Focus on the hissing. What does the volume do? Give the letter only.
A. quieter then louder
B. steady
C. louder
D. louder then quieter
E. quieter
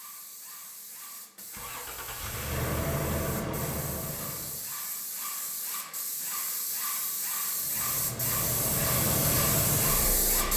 C.